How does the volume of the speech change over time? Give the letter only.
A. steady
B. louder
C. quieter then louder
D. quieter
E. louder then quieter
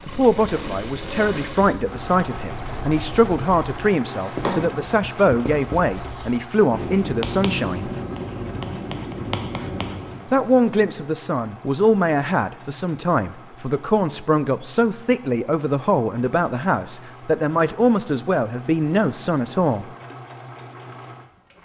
A.